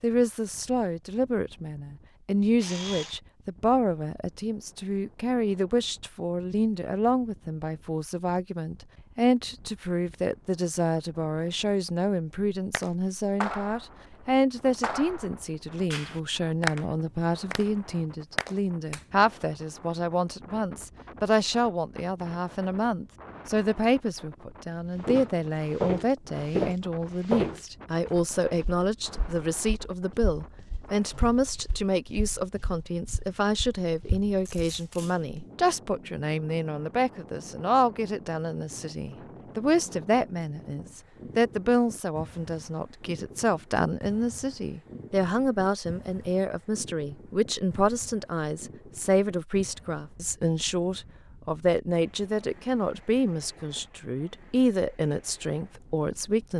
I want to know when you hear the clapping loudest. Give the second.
17 s.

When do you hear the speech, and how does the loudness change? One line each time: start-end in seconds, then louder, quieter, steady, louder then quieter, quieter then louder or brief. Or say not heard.
0.0-56.5 steady.